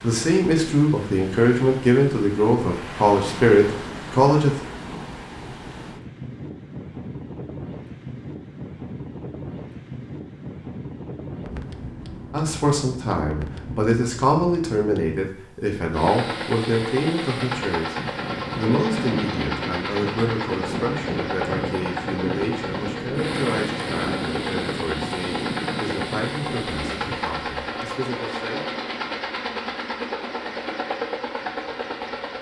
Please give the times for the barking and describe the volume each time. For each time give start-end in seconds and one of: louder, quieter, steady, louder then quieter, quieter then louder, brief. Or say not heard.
not heard.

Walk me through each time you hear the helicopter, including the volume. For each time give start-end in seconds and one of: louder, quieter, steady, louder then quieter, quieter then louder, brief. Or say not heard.
15.9-32.3 steady.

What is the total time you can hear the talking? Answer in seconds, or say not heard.
21 s.